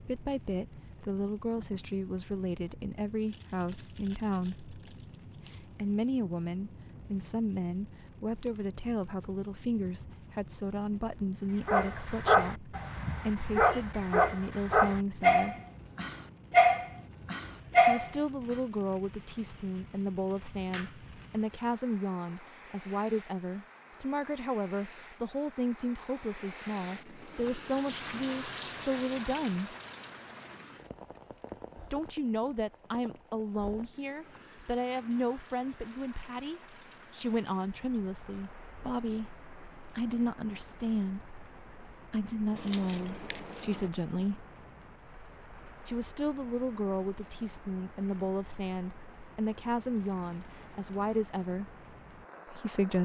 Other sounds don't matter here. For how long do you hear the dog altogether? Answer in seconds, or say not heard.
7 s.